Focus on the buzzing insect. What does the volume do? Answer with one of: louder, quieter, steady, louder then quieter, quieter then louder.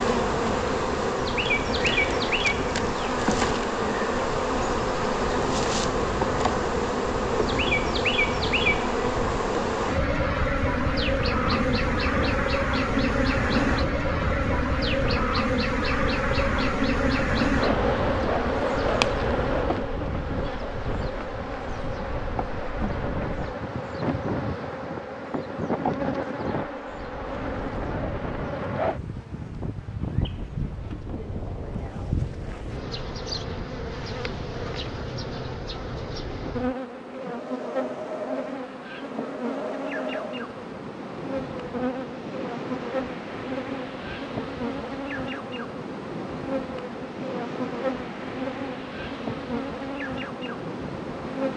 quieter.